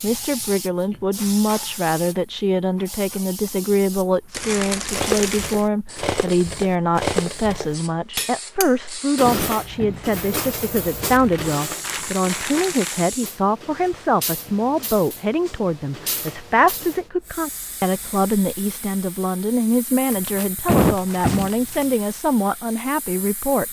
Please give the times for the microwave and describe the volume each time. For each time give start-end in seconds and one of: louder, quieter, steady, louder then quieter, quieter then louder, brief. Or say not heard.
not heard.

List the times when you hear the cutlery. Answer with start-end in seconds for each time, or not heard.
4.9-17.0.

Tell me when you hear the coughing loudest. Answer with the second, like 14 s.
21 s.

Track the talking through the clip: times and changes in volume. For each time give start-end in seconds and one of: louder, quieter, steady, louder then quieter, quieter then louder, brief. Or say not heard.
0.0-23.6 steady.